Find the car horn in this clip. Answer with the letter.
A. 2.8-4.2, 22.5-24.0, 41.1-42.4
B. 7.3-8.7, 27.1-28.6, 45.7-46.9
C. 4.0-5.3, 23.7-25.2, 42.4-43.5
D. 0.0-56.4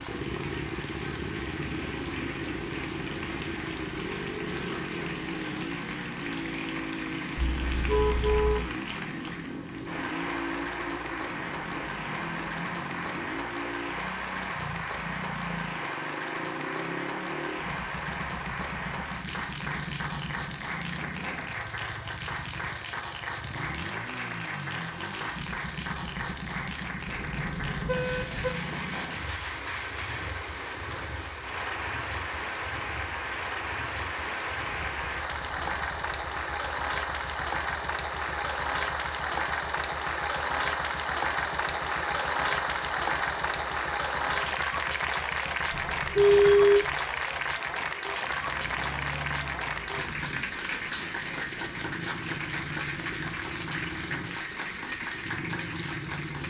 B.